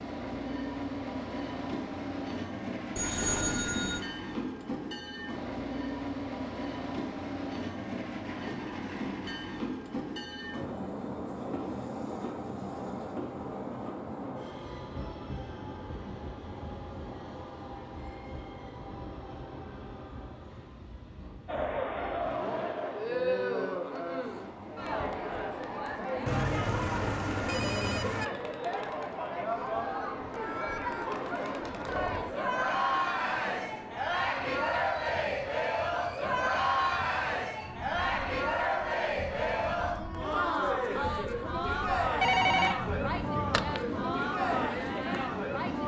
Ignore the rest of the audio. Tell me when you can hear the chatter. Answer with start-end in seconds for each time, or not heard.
21.4-45.8.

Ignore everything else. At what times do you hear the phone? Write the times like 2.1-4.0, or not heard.
3.0-4.0, 26.2-28.2, 42.2-43.8.